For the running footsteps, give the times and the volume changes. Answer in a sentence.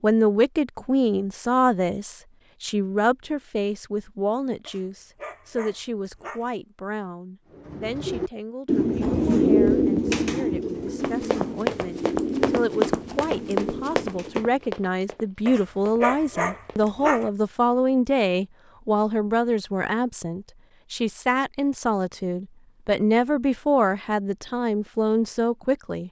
The running footsteps can be heard from 11.0 to 16.9 s, getting quieter.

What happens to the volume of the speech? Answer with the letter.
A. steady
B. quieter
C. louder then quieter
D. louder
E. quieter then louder
E.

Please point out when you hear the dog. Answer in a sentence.
You can hear the dog from 4.7 to 6.5 s and from 15.4 to 17.3 s.